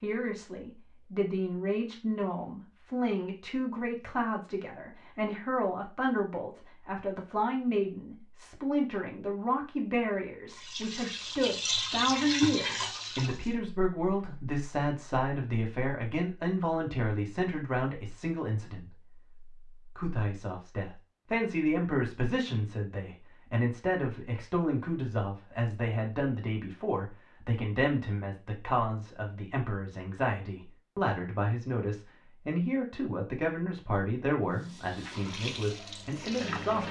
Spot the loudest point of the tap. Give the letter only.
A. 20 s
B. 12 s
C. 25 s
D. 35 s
B.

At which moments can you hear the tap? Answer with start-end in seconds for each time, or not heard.
10.5-13.6, 34.5-36.8.